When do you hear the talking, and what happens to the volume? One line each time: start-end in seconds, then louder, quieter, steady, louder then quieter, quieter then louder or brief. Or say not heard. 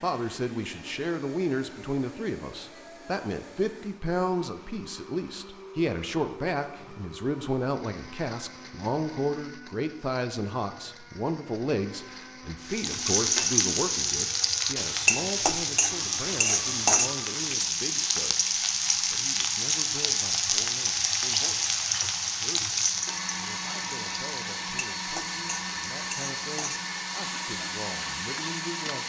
0.0-29.0 quieter.